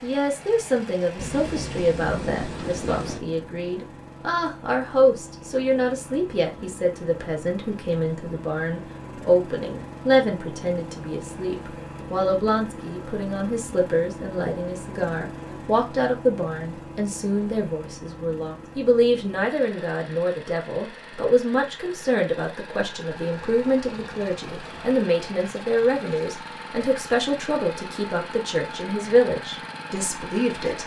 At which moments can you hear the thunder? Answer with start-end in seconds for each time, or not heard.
1.1-3.2, 23.1-25.1.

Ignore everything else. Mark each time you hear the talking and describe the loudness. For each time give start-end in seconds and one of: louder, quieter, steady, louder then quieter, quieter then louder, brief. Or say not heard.
0.0-30.8 steady.